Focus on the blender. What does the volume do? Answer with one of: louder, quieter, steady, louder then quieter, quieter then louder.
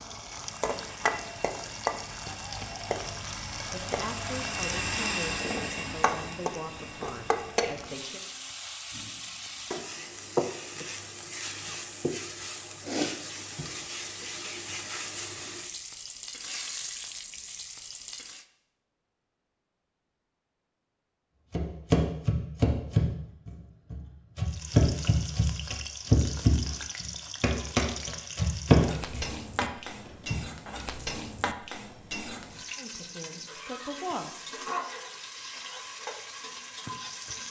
louder then quieter.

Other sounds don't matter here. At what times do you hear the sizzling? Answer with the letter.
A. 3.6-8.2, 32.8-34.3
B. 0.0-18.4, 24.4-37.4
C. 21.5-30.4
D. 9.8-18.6
B.